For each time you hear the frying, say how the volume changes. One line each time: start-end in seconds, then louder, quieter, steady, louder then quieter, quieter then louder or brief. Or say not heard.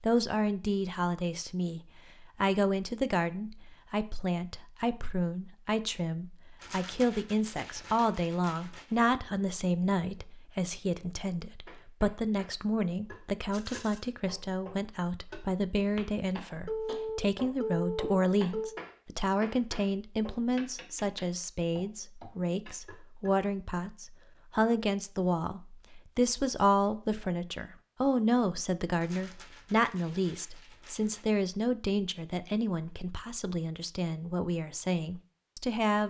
not heard.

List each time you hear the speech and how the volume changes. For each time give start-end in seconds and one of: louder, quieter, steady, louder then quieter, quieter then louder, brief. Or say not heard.
0.0-1.8 brief
2.4-36.0 steady.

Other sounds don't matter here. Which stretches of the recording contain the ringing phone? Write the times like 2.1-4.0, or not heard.
16.6-18.8.